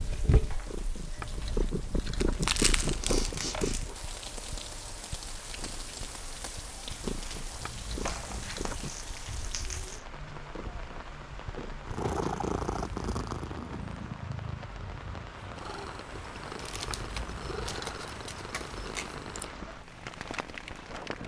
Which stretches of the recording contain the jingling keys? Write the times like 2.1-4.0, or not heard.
1.1-4.0, 7.6-8.9, 16.9-18.0.